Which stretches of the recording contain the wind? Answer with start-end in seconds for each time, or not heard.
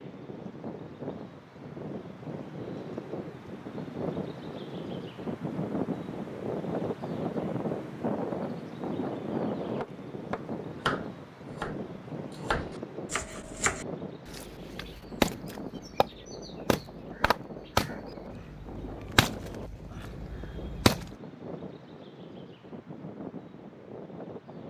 0.0-24.6.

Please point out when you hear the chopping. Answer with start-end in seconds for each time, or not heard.
9.8-21.1.